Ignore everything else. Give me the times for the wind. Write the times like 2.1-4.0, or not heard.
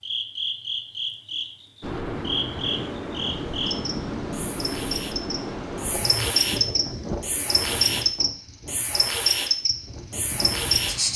1.8-11.1.